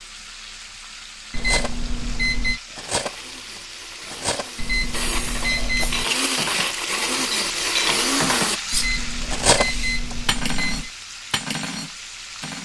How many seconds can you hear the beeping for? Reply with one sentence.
The beeping can be heard for 5 seconds in total.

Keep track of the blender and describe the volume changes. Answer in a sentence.
The loudness of the blender goes up.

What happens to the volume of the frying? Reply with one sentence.
The volume of the frying goes up, then down.